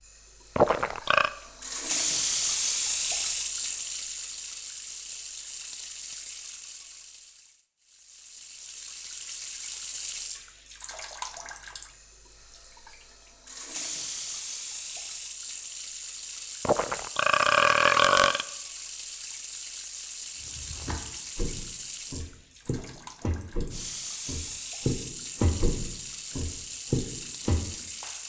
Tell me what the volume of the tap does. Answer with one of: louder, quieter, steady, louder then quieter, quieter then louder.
quieter.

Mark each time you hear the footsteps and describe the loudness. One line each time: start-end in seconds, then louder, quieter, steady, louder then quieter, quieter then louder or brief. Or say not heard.
20.4-28.1 louder.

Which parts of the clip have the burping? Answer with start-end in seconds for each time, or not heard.
0.6-1.3, 16.6-18.4.